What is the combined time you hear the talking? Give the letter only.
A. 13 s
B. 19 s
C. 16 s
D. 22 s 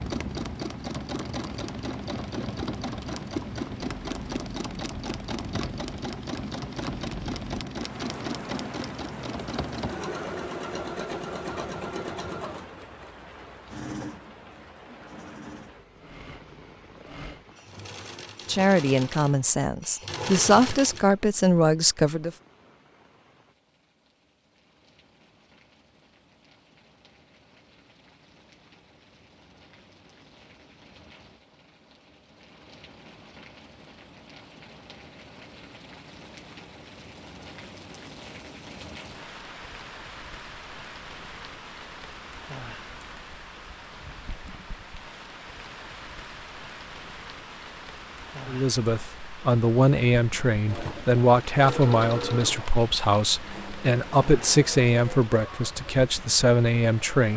A.